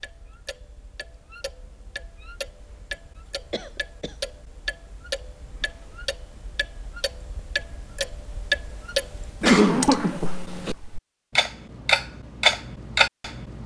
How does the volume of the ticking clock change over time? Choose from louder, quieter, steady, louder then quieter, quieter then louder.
louder.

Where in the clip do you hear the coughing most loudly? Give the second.
10 s.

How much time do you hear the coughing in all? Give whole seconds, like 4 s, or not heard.
2 s.